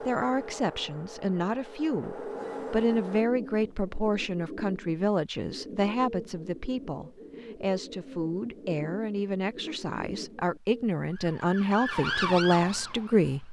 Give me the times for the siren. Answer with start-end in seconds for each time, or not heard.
11.0-13.4.